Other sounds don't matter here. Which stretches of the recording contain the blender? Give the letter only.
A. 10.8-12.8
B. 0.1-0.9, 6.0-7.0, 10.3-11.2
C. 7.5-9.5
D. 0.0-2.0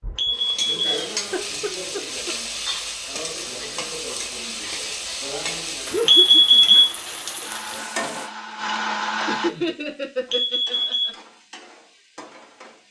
C.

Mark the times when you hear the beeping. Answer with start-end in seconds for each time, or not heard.
0.1-0.9, 6.0-7.0, 10.3-11.2.